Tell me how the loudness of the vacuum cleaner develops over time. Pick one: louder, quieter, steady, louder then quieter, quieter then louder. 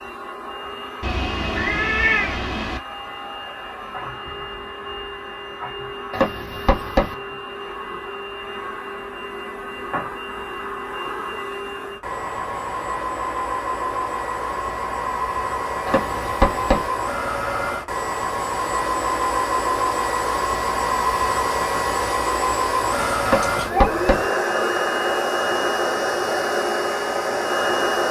louder.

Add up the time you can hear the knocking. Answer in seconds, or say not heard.
3 s.